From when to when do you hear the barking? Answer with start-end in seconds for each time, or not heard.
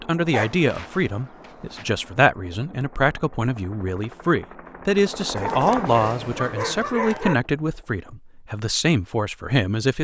0.3-1.9, 5.3-7.3.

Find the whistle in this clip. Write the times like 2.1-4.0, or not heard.
not heard.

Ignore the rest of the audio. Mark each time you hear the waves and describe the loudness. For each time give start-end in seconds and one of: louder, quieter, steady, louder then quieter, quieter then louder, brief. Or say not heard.
not heard.